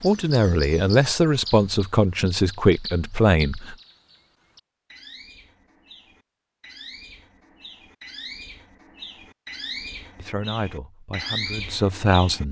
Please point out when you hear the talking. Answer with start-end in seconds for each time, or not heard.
0.0-3.8, 10.2-12.4.